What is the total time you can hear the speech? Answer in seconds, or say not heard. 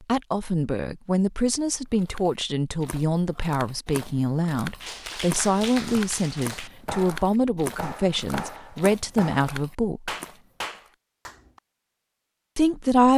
11 s.